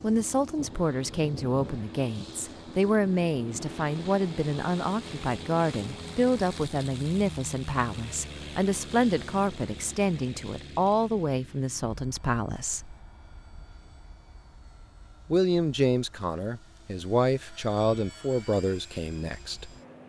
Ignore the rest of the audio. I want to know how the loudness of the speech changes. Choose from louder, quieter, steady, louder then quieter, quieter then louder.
steady.